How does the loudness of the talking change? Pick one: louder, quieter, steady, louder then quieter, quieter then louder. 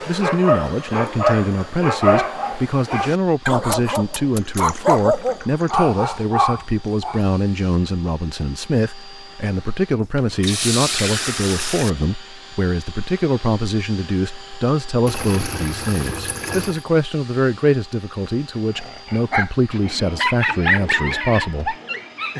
steady.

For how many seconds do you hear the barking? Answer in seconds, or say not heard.
11 s.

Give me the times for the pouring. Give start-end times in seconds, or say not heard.
4.3-5.8, 10.0-11.9, 15.1-16.9.